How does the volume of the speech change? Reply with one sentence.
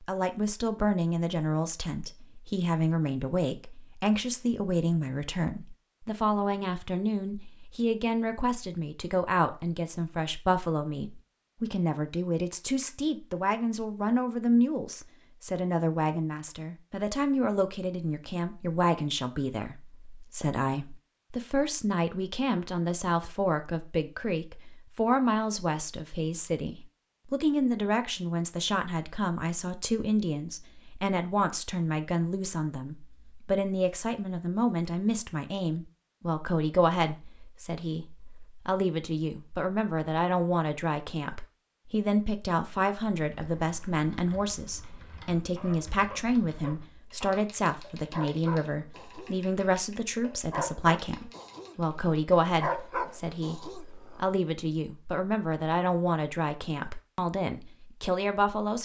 The loudness of the speech stays about the same.